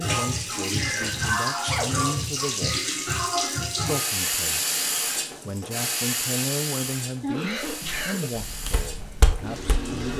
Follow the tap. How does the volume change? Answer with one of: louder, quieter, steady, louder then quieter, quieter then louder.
quieter.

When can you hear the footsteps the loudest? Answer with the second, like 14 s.
9 s.